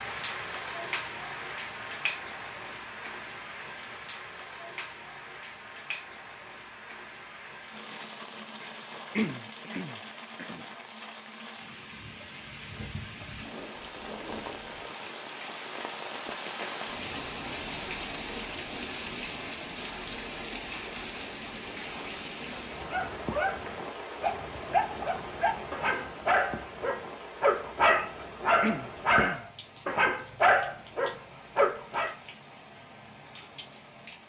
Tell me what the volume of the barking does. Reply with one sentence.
The volume of the barking goes up.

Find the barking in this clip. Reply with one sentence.
You can hear the barking from 22.5 to 32.1 s.